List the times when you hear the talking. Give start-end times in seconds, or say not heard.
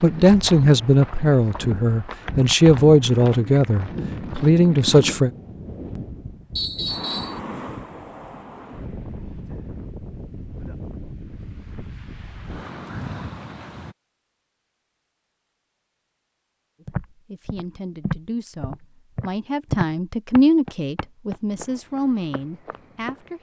0.0-5.3, 16.9-23.3.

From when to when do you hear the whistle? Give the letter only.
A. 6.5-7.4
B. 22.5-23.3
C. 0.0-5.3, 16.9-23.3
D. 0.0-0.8
A.